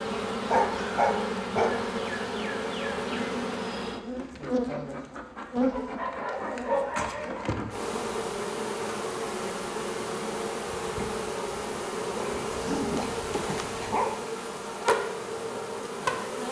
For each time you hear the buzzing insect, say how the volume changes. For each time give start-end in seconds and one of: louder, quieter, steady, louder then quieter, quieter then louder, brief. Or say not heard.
0.0-16.4 steady.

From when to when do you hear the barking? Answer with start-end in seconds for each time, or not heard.
0.4-1.9, 5.6-7.6, 12.2-14.2.